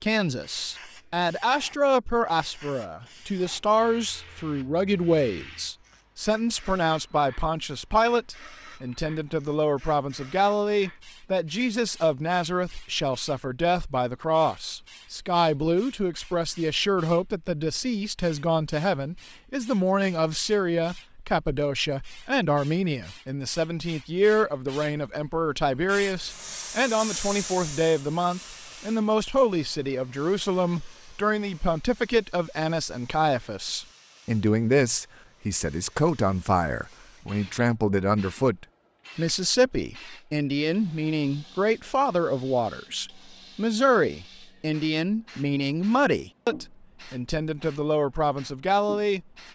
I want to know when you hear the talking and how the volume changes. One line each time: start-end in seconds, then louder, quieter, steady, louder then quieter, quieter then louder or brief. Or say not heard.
0.0-49.2 steady.